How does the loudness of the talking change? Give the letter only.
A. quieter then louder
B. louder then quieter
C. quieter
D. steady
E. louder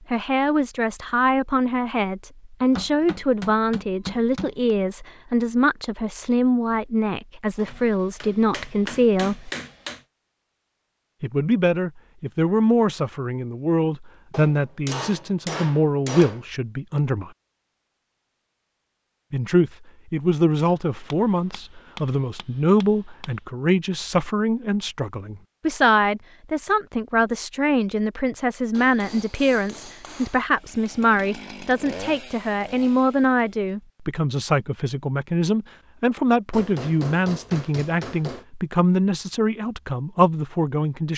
D.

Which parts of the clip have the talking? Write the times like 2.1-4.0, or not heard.
0.1-9.5, 11.2-17.3, 19.3-41.1.